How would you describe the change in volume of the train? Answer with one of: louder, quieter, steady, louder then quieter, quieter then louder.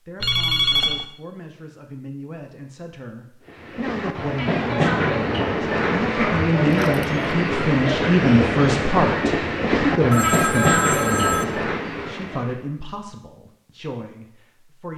steady.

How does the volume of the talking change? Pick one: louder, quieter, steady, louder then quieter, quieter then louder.
louder then quieter.